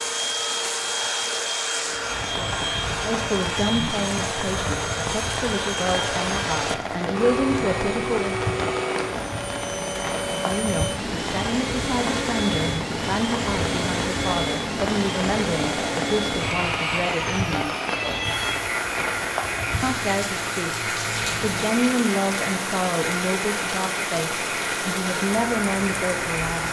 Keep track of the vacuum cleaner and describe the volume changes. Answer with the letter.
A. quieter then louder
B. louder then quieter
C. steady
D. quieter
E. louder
C.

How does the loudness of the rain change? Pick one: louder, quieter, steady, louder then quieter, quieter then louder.
steady.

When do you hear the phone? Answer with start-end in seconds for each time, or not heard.
17.9-18.7.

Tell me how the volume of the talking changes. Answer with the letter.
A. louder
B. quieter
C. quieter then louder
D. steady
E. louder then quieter
D.